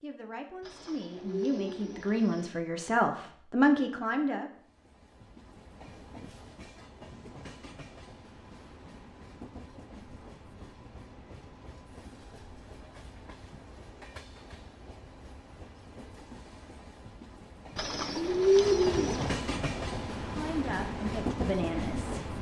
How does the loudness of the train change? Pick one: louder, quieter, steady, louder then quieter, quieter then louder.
louder.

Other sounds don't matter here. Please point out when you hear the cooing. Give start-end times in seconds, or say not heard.
0.6-2.5, 17.8-19.4.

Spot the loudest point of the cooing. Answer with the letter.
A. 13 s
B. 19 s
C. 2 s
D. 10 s
B.